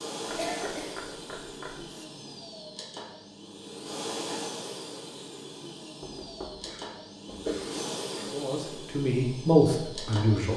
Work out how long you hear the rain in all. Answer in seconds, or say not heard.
not heard.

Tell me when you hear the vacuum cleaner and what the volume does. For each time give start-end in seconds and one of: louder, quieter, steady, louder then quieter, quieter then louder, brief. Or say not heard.
0.0-10.5 steady.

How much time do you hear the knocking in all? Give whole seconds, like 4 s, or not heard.
3 s.